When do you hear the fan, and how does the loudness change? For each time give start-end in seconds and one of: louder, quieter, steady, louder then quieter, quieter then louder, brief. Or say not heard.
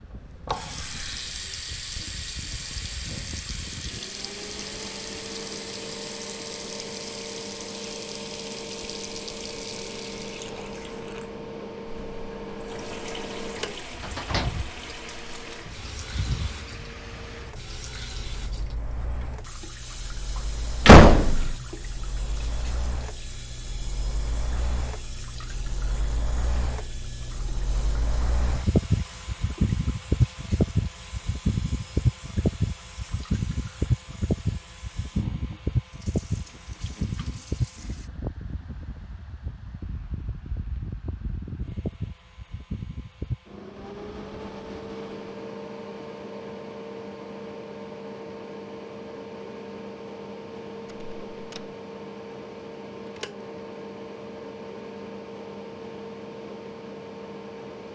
0.0-57.9 louder then quieter.